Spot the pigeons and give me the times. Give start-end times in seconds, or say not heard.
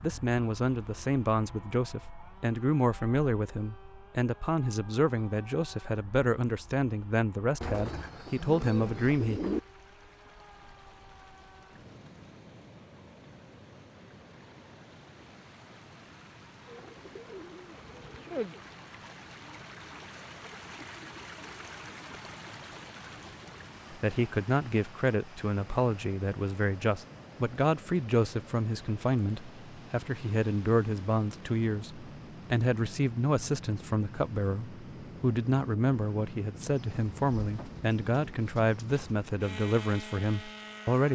7.6-9.6, 16.6-18.6, 36.6-39.1.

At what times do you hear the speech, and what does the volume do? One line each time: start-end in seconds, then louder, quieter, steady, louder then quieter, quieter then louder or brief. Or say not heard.
0.0-9.4 steady
23.9-41.0 steady.